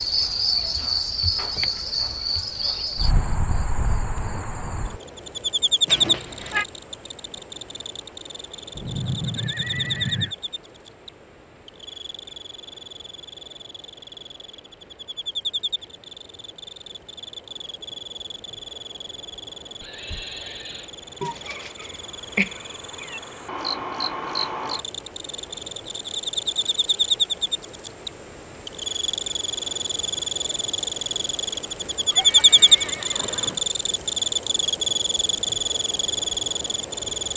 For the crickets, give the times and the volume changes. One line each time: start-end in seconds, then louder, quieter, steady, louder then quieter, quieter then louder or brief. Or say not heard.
0.0-37.3 quieter then louder.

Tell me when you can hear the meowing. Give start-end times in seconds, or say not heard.
5.8-6.7, 21.2-23.2.